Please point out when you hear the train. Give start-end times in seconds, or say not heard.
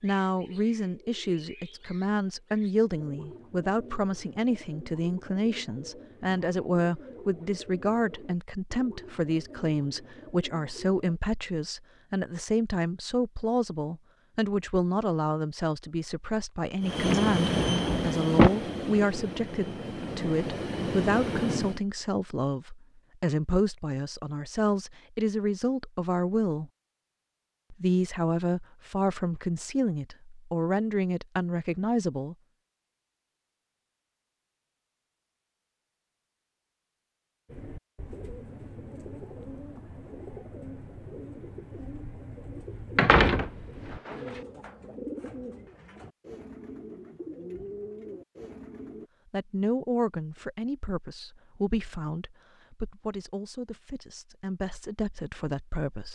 16.8-21.8.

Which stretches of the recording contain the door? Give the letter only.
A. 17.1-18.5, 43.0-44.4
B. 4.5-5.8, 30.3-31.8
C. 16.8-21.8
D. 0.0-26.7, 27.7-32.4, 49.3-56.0
A.